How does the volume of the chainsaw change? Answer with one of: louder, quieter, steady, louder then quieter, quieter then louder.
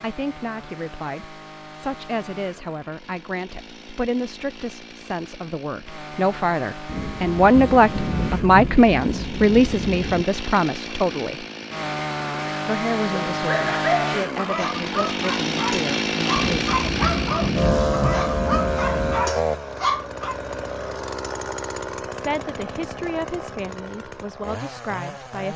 louder then quieter.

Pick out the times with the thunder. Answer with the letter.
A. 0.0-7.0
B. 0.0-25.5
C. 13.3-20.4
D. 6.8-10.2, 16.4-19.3
D.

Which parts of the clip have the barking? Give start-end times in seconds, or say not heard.
13.3-20.4.